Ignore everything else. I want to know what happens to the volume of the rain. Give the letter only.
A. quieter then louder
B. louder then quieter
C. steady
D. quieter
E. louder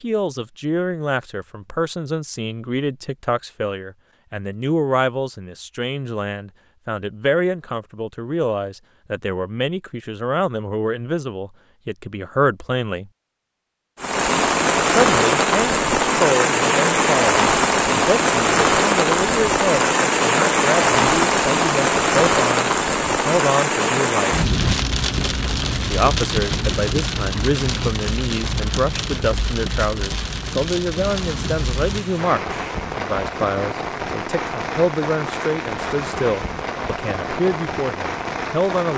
D.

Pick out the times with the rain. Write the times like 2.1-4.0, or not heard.
14.0-38.9.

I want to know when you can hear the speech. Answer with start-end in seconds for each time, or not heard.
0.0-13.1, 14.8-24.4, 25.9-38.9.